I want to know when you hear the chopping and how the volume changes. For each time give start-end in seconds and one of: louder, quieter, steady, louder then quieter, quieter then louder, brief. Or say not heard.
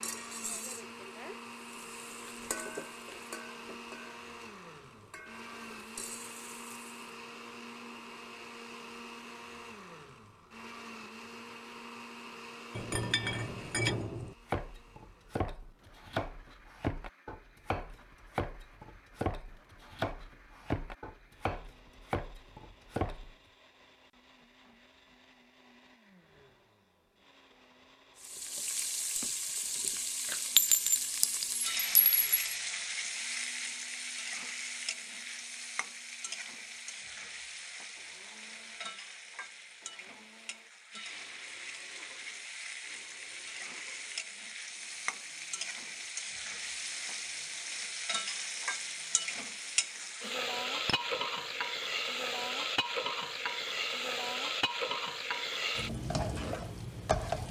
14.4-23.4 steady.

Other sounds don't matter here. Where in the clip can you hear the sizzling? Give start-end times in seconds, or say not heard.
0.0-6.9, 28.2-57.4.